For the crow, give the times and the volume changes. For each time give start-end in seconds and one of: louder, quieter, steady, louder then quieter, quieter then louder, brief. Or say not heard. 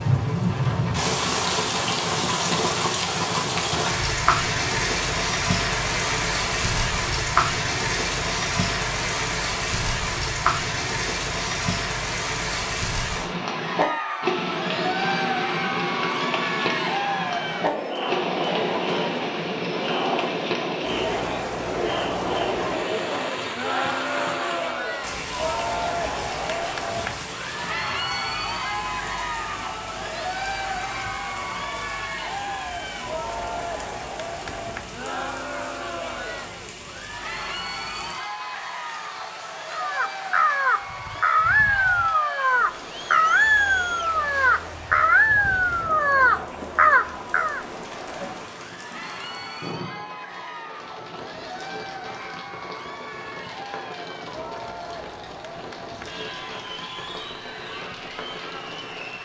39.7-47.6 steady.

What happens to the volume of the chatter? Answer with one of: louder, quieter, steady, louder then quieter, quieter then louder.
quieter.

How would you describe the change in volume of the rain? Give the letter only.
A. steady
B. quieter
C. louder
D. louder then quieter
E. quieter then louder
B.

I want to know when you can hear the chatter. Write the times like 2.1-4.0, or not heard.
13.4-59.2.